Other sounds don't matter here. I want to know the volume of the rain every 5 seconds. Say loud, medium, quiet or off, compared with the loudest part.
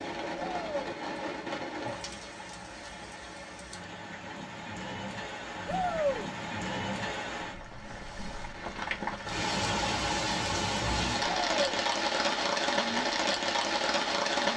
medium, medium, loud.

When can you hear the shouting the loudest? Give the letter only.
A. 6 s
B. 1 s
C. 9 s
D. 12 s
A.